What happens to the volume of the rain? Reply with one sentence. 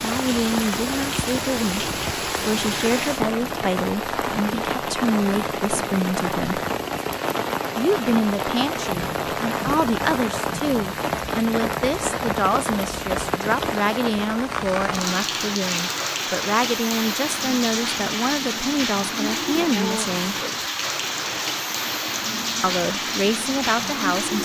The loudness of the rain stays about the same.